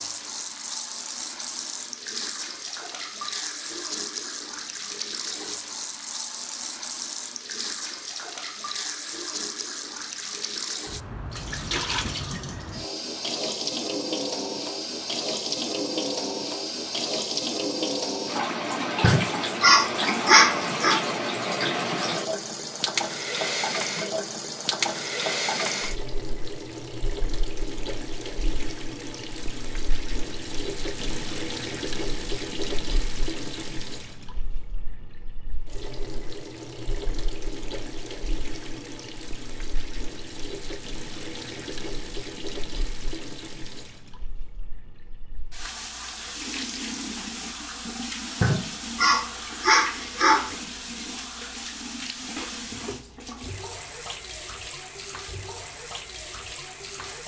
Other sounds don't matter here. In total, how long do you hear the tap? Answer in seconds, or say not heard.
57 s.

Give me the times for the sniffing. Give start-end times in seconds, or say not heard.
19.0-21.0, 48.4-50.5.